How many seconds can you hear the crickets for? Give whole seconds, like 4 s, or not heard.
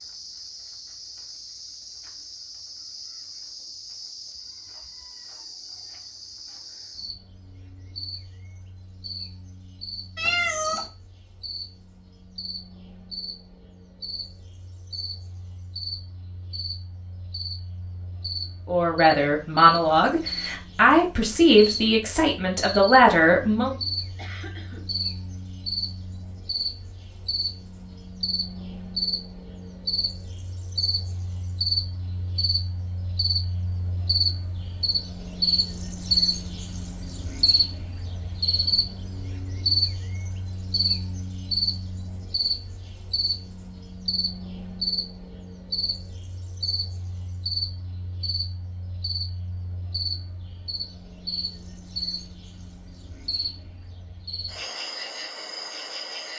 56 s.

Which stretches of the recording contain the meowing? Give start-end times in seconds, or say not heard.
10.2-10.8.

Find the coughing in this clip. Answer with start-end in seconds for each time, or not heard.
24.1-24.9.